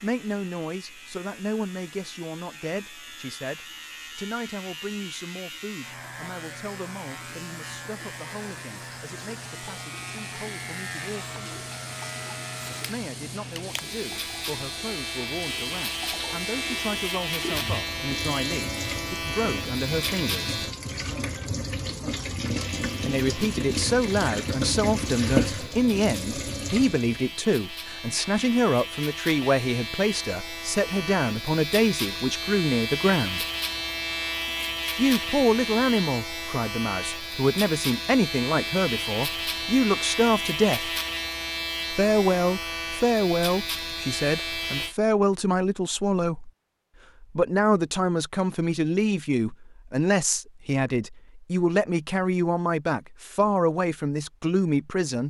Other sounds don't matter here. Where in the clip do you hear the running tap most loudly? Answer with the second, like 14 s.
25 s.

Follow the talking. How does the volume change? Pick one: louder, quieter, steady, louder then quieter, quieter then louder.
louder.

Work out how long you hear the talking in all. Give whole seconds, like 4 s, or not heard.
48 s.